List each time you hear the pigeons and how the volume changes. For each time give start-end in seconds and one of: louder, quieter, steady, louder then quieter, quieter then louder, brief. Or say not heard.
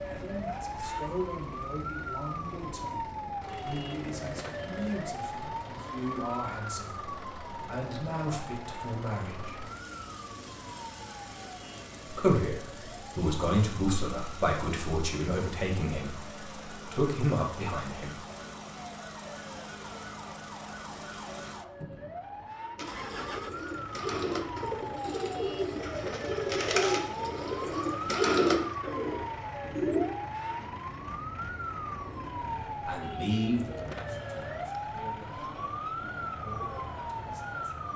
22.8-30.1 louder.